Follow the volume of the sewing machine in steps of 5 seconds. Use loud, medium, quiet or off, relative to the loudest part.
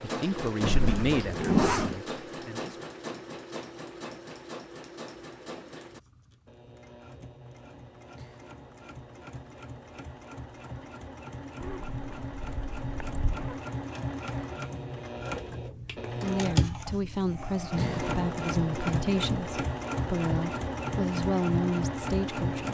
medium, quiet, medium, loud, loud.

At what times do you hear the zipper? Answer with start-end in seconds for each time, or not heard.
0.6-2.0, 11.6-13.6.